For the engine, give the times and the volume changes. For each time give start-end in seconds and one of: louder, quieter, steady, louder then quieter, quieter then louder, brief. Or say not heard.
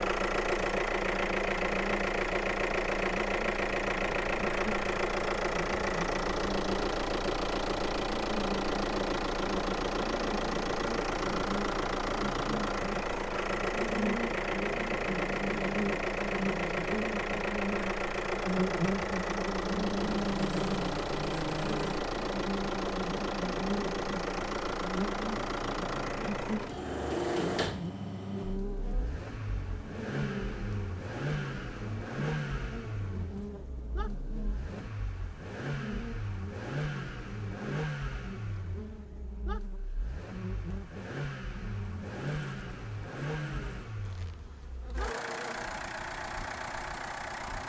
0.0-47.6 quieter.